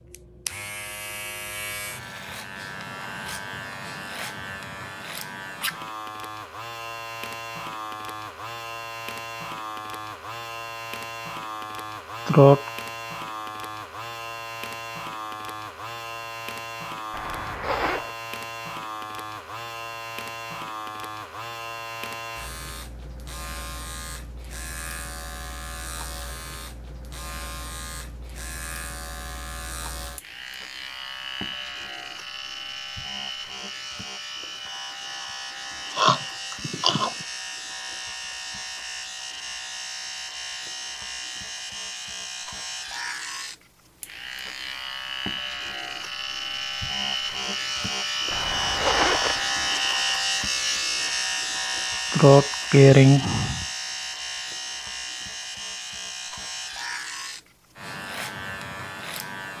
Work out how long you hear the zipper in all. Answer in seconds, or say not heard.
2 s.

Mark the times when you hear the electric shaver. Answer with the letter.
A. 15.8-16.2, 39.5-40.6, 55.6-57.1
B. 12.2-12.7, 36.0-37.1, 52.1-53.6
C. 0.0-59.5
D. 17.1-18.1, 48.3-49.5
C.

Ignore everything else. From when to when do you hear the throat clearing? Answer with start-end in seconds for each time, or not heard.
12.2-12.7, 36.0-37.1, 52.1-53.6.